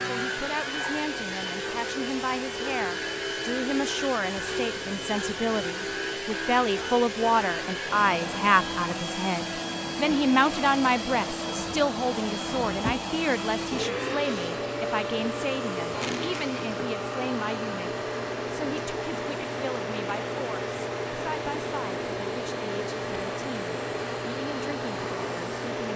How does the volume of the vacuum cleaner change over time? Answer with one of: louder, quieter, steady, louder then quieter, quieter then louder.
steady.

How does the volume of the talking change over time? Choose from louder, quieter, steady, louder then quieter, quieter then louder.
louder then quieter.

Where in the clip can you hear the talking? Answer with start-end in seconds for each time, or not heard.
0.1-25.9.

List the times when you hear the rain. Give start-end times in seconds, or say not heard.
not heard.